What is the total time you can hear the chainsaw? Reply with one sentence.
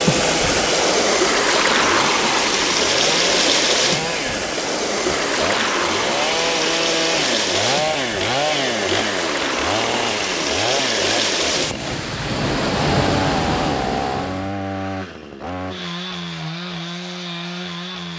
The chainsaw can be heard for 18 seconds in total.